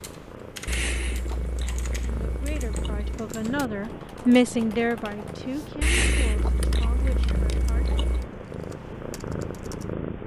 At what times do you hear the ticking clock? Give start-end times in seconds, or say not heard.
not heard.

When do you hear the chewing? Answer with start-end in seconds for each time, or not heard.
0.7-3.2, 5.8-8.3.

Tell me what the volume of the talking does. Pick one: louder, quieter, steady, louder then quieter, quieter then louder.
louder then quieter.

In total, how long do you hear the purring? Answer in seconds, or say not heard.
10 s.